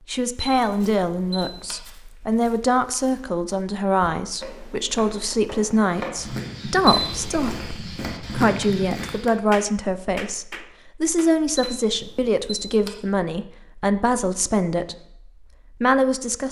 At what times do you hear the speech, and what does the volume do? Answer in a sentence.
The speech can be heard from 0.1 to 14.9 s, at a steady volume; and briefly from 15.8 to 16.4 s.